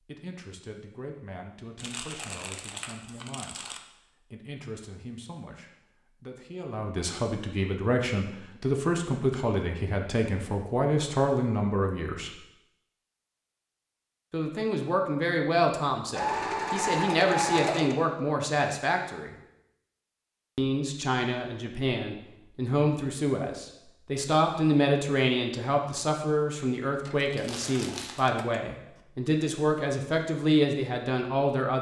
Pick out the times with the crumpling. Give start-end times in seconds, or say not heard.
1.8-3.8, 27.4-28.3.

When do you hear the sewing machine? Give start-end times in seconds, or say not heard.
16.1-17.9, 27.0-29.1.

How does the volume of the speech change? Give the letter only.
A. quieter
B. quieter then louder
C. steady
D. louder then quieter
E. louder
E.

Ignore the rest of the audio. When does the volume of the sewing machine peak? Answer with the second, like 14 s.
17 s.